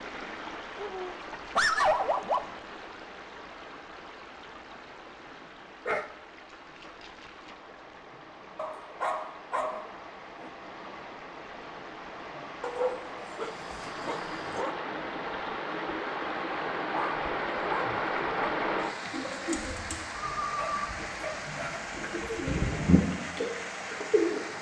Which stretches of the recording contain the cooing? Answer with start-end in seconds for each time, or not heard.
19.1-24.4.